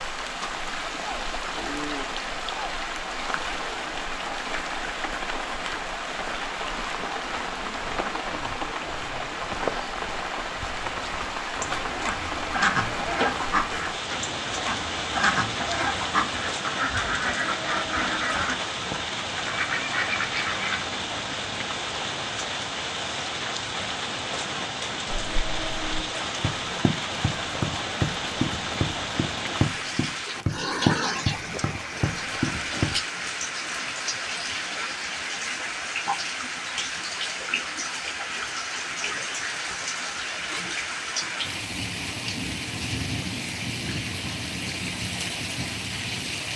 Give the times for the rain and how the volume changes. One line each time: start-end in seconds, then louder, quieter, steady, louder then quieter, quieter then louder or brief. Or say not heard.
0.0-46.5 steady.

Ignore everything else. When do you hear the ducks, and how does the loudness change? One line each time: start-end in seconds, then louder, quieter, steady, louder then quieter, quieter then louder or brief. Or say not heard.
11.6-20.8 steady.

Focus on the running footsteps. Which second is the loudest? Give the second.
31 s.